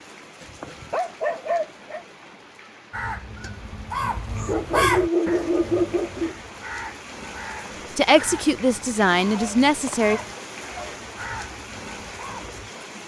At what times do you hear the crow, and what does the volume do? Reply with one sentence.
You can hear the crow from 2.9 to 12.7 s, getting quieter.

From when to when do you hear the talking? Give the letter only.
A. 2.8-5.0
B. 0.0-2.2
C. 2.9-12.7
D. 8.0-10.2
D.